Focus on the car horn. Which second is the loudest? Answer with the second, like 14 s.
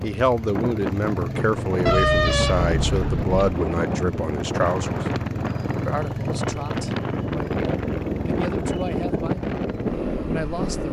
2 s.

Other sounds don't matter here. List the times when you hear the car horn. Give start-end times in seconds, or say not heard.
1.9-3.4.